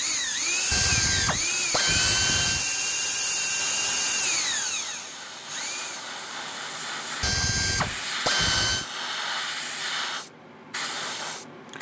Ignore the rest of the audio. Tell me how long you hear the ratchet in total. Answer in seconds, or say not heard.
4 s.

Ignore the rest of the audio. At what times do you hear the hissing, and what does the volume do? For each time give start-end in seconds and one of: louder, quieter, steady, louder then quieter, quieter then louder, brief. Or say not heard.
3.5-11.7 louder.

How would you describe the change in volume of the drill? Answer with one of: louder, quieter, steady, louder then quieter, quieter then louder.
quieter.